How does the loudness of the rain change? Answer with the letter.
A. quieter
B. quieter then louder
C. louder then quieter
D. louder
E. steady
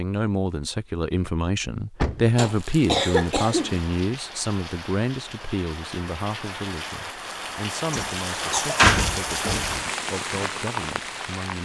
D.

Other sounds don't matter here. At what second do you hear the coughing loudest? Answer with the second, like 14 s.
3 s.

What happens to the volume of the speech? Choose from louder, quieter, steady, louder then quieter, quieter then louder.
quieter.